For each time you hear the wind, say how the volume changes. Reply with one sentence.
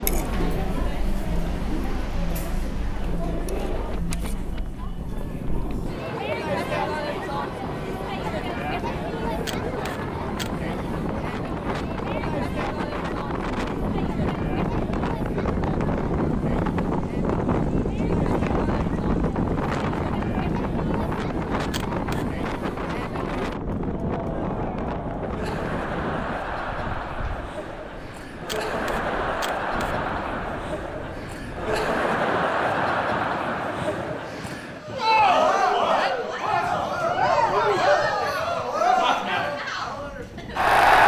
You can hear the wind from 0.0 to 41.0 s, getting louder then quieter.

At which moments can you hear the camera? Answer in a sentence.
You can hear the camera from 9.4 to 10.5 s, from 21.7 to 22.2 s and from 28.4 to 29.9 s.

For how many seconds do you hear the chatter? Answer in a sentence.
You can hear the chatter for 41 seconds altogether.